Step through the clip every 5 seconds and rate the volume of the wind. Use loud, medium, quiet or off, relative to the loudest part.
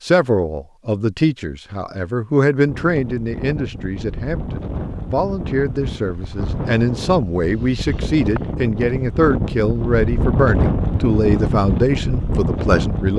medium, medium, loud.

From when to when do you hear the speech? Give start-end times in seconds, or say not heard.
0.0-13.1.